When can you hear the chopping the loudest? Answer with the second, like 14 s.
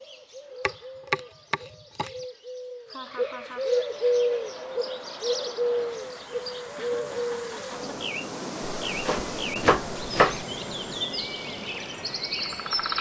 10 s.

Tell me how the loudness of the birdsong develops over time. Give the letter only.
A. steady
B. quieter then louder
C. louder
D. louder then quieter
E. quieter
D.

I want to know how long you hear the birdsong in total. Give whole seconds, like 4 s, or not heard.
13 s.